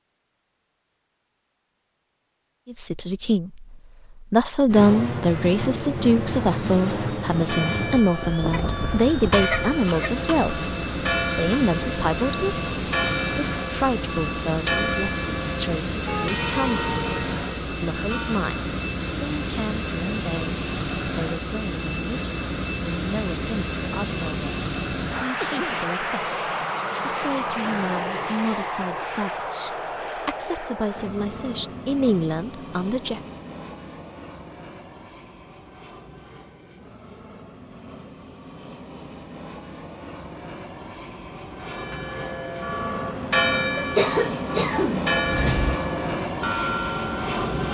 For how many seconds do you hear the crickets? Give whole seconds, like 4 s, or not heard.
not heard.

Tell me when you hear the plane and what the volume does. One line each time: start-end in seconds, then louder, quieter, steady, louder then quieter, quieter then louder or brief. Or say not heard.
4.7-47.6 quieter then louder.